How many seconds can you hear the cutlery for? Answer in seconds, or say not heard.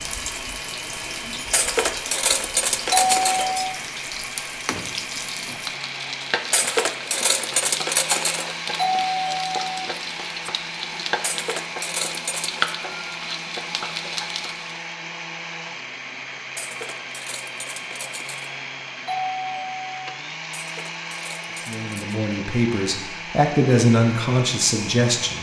9 s.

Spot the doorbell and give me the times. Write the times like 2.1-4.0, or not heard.
2.9-3.8, 8.8-9.8, 19.1-20.1.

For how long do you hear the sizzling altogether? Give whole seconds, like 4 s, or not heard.
15 s.